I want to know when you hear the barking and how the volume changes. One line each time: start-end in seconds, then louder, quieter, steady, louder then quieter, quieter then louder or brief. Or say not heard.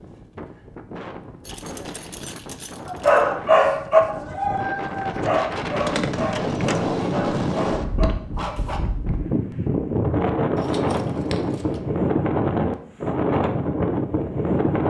2.9-8.8 quieter.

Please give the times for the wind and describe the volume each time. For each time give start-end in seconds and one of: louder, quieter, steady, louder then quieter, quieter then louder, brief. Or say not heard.
0.0-14.8 louder.